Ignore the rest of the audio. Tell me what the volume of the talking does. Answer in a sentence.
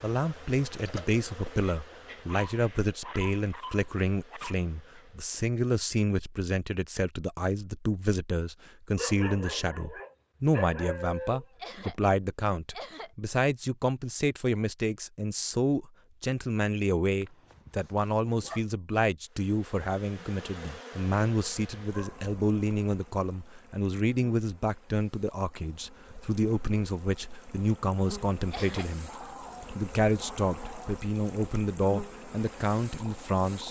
The loudness of the talking stays about the same.